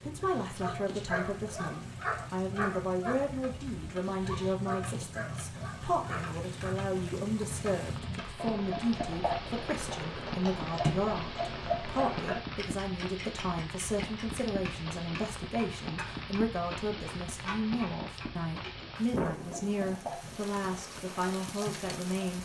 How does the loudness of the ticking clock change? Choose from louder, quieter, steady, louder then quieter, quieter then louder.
louder then quieter.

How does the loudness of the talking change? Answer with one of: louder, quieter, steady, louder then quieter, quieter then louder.
steady.